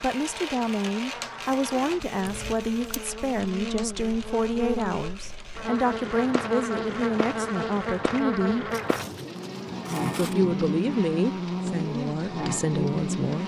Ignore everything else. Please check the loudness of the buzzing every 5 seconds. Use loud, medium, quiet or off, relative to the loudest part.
medium, loud, loud.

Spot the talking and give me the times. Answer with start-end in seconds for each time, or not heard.
0.0-8.7, 10.2-13.4.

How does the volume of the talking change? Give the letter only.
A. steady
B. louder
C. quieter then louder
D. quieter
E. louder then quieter
A.